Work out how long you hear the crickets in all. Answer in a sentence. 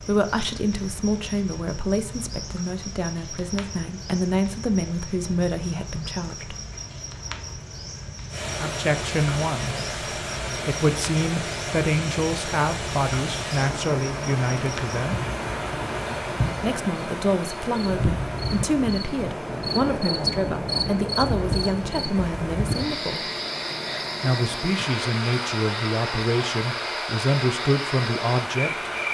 The crickets can be heard for 29 seconds in total.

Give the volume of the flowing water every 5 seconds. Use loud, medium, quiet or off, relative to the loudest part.
off, loud, loud, loud, medium, loud.